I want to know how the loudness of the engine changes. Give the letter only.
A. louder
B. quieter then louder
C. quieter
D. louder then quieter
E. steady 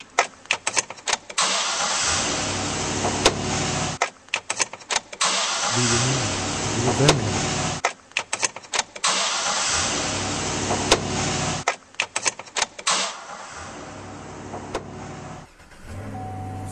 C.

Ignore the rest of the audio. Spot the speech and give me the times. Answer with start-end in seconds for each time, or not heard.
5.7-7.5.